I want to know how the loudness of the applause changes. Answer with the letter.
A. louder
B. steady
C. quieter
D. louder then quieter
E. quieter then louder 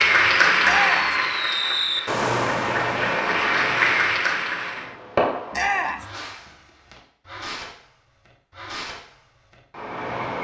E.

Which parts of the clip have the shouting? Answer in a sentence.
The shouting can be heard from 0.6 to 1.1 s and from 5.5 to 6.0 s.